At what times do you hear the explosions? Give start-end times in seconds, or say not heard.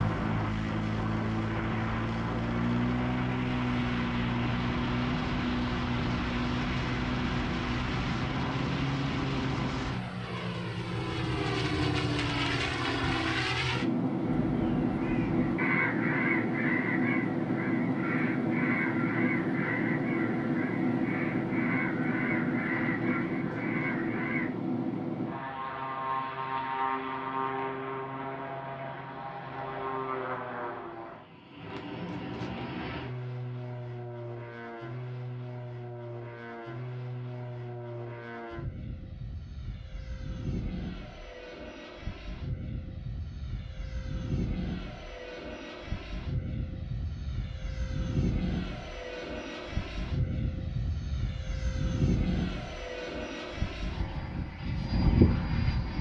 not heard.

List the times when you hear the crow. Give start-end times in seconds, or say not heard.
14.2-24.5.